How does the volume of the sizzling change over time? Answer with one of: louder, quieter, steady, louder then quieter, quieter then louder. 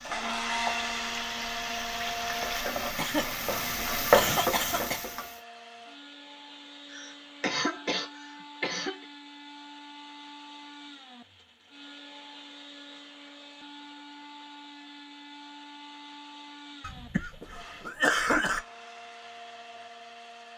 louder.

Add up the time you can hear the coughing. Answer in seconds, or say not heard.
6 s.